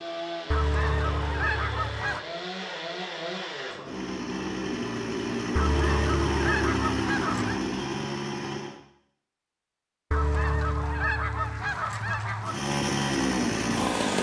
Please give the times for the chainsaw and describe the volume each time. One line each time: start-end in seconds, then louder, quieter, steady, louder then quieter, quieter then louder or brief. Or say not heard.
0.0-8.8 louder
12.4-14.1 brief.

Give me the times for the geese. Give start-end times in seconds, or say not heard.
0.5-2.2, 5.5-7.6, 10.1-12.7.